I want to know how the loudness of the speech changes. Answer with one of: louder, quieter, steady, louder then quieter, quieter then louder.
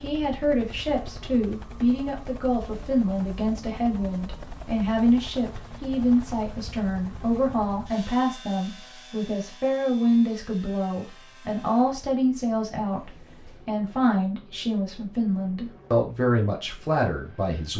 steady.